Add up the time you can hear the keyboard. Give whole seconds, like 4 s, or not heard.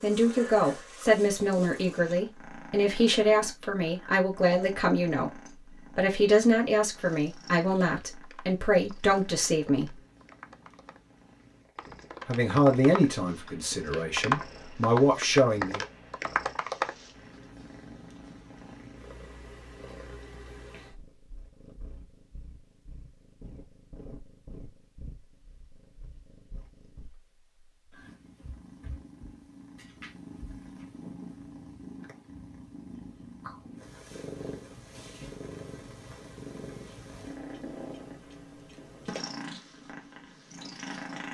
9 s.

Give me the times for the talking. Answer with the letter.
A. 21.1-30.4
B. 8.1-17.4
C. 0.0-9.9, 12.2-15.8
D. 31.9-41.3
C.